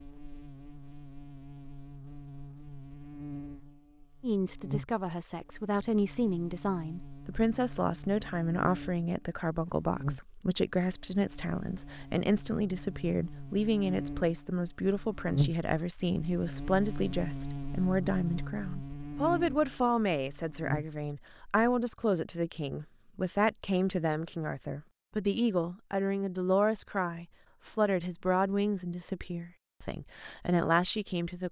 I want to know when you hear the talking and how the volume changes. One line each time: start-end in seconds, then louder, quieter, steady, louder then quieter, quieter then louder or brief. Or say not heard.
4.2-31.4 steady.